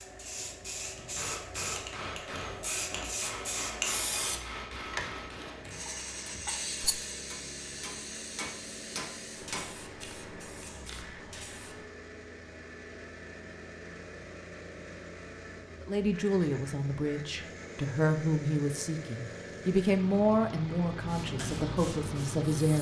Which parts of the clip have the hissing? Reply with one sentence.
You can hear the hissing from 0.0 to 11.8 s and from 21.0 to 22.7 s.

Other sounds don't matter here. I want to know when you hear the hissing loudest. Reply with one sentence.
The volume of the hissing peaks at 4 seconds.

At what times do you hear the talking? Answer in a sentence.
The talking can be heard from 15.8 to 22.7 s.